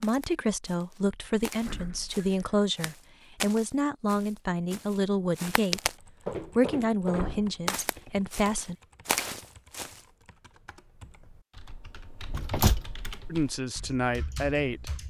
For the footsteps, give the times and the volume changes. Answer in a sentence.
You can hear the footsteps from 0.0 to 10.0 s, getting louder.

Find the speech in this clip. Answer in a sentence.
You can hear the speech from 0.0 to 8.8 s and from 13.3 to 14.9 s.